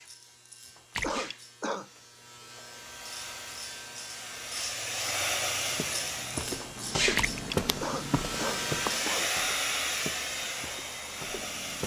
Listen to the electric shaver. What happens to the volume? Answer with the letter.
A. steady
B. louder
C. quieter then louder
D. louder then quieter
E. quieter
B.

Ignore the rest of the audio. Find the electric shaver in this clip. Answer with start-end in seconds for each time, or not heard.
0.0-9.1.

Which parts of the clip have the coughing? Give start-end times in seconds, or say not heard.
1.0-1.9, 7.8-9.3.